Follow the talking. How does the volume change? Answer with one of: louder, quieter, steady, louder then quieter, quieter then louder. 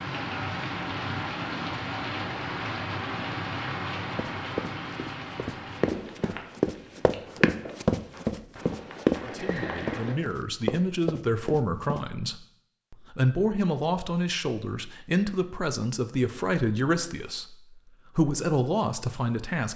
steady.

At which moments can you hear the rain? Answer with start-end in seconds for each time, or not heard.
0.0-10.2.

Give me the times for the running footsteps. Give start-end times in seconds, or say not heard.
4.2-12.1.